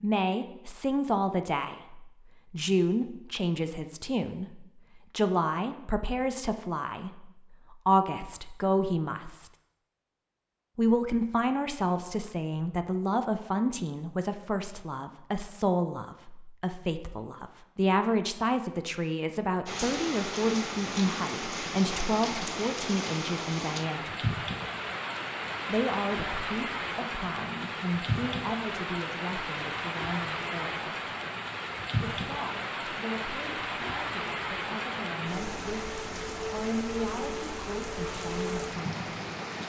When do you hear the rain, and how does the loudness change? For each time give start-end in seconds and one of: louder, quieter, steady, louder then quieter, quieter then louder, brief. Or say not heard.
19.6-39.6 steady.